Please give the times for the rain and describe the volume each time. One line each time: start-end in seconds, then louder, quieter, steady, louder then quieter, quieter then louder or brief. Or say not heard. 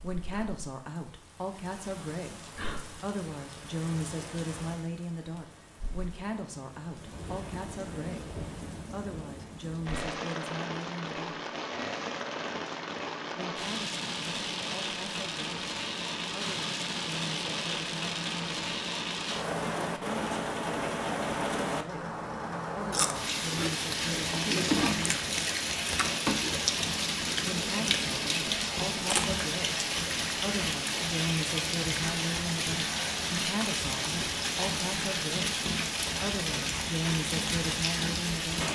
0.0-38.6 louder.